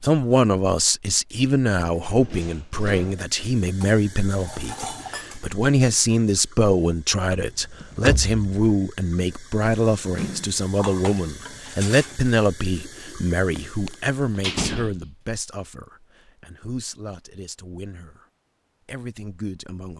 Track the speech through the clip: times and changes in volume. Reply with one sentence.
The speech can be heard from 0.0 to 18.2 s, getting quieter; and briefly from 18.9 to 19.9 s.